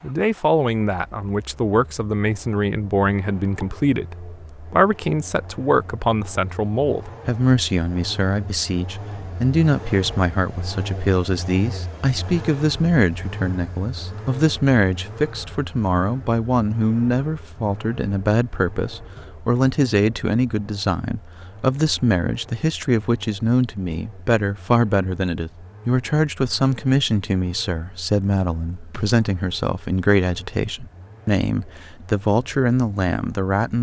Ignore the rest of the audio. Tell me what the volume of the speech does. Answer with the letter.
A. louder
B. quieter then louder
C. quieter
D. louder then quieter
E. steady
E.